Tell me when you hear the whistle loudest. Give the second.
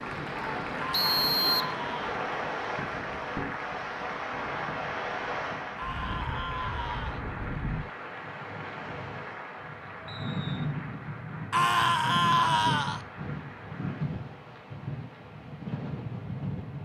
1 s.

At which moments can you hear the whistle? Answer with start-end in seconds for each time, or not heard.
0.9-1.8, 10.1-10.7.